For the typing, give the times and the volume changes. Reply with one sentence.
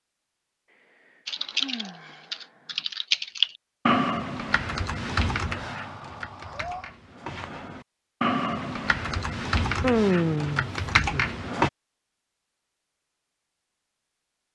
You can hear the typing from 1.2 to 11.7 s, getting quieter then louder.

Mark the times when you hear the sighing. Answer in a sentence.
You can hear the sighing from 0.7 to 2.9 s, from 5.5 to 7.0 s and from 9.8 to 11.2 s.